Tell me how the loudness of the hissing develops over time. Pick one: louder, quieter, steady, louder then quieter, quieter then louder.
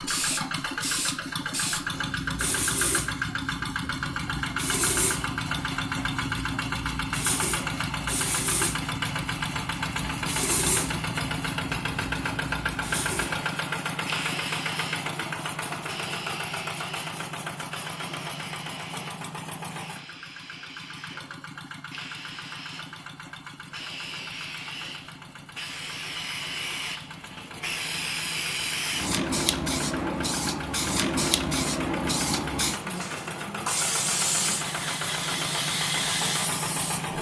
quieter then louder.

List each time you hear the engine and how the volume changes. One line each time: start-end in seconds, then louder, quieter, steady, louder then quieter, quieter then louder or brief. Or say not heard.
0.0-37.1 quieter then louder.